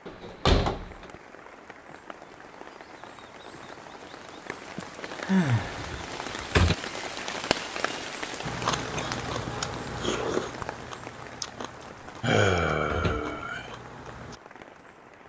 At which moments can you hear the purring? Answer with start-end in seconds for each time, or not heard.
not heard.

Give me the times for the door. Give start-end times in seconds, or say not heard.
0.1-1.1, 5.6-6.8, 12.8-13.3.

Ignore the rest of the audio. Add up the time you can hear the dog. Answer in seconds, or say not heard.
not heard.